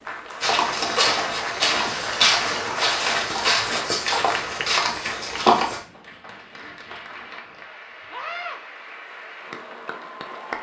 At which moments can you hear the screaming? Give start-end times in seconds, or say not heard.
8.1-8.6.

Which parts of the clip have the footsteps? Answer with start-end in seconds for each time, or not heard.
0.4-5.8.